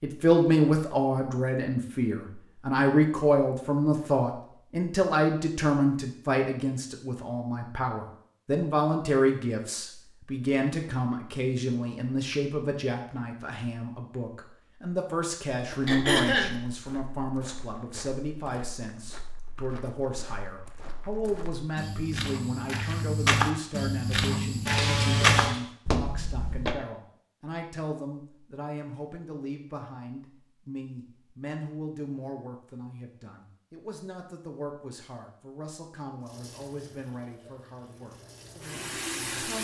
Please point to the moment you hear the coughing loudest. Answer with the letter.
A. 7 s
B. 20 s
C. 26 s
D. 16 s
D.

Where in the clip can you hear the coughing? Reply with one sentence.
You can hear the coughing from 15.8 to 16.6 s and from 24.6 to 25.6 s.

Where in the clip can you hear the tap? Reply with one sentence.
You can hear the tap from 36.2 to 39.5 s.